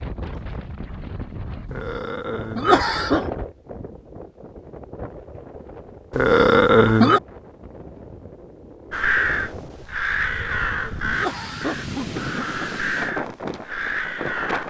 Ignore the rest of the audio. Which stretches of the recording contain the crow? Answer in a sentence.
You can hear the crow from 8.9 to 14.6 s.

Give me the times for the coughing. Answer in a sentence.
The coughing can be heard from 1.7 to 3.2 s, from 6.1 to 7.2 s and from 10.2 to 12.7 s.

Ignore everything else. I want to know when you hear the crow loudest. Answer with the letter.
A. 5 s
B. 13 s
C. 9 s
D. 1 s
C.